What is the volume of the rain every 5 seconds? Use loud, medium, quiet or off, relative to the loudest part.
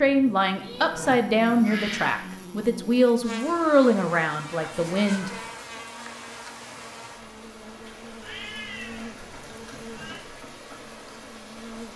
off, loud, loud.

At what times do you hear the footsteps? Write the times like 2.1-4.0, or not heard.
not heard.